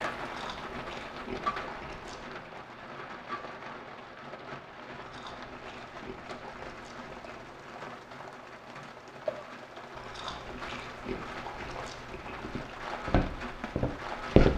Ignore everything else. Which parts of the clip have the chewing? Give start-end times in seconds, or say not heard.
0.2-2.4, 5.0-7.5, 9.9-12.6.